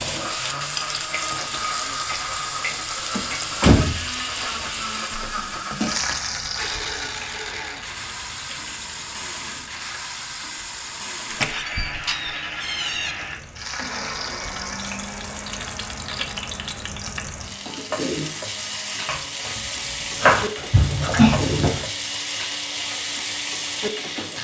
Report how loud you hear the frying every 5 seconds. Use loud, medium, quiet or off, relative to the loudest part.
loud, loud, medium, loud, loud.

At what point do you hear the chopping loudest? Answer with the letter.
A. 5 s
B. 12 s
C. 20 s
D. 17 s
C.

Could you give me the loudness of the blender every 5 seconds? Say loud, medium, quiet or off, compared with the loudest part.
loud, loud, loud, medium, loud.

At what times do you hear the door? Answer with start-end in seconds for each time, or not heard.
3.1-4.0, 11.3-13.2, 20.7-21.9.